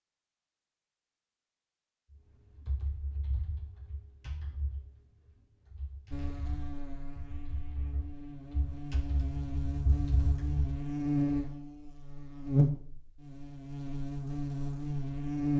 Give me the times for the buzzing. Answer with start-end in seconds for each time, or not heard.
6.1-15.5.